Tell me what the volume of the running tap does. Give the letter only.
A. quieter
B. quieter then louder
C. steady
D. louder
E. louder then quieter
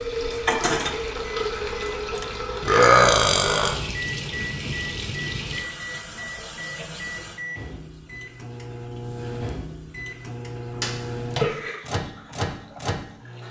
B.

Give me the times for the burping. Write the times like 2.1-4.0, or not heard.
2.6-3.8, 10.7-11.8.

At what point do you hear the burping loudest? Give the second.
3 s.